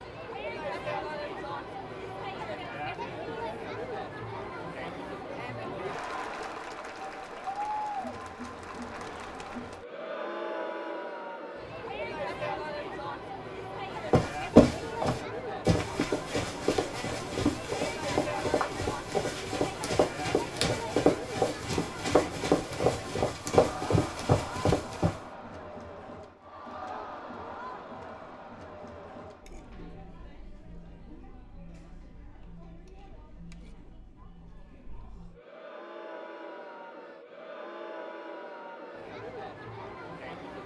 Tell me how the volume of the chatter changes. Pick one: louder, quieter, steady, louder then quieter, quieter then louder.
quieter.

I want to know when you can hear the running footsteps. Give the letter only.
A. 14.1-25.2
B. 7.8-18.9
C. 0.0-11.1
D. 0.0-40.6
A.